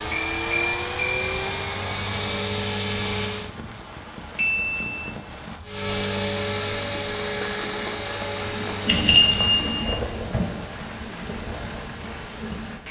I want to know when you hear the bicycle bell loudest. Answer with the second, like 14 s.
9 s.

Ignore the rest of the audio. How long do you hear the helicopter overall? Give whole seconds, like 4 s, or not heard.
8 s.